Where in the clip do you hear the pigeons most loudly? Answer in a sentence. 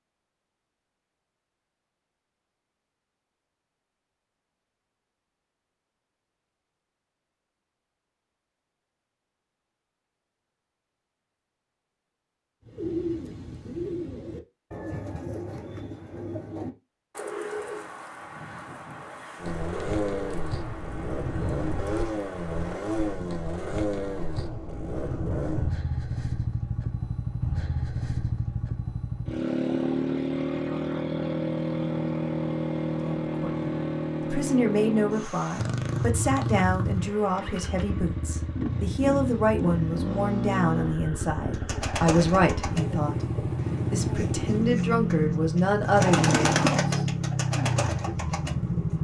The loudest moment of the pigeons is at 47 seconds.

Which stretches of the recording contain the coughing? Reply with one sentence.
You can't hear the coughing here.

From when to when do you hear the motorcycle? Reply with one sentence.
The motorcycle can be heard from 19.4 to 48.9 s.